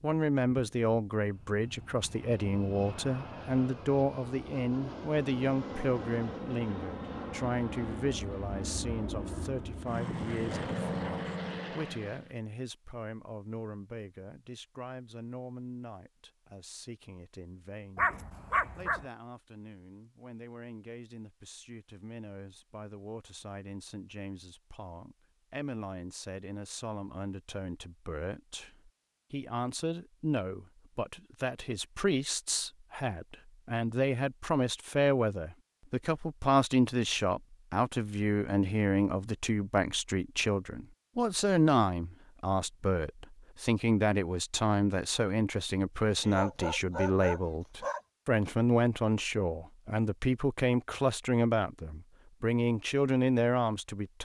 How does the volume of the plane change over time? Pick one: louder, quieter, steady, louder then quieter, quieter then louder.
louder.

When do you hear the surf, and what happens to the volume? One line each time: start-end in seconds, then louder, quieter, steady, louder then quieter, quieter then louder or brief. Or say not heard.
not heard.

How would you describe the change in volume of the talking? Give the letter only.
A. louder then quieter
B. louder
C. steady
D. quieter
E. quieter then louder
E.